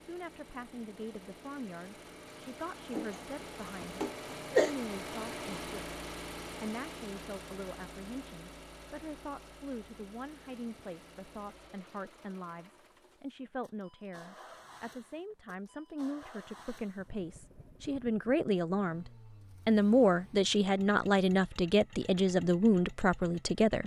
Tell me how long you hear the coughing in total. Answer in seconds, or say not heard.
2 s.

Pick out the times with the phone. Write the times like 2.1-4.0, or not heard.
not heard.